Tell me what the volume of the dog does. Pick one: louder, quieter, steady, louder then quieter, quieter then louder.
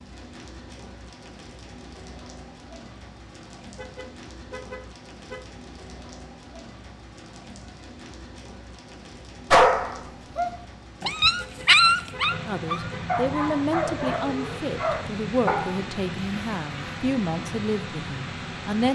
louder then quieter.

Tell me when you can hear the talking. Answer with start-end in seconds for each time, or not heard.
12.4-18.9.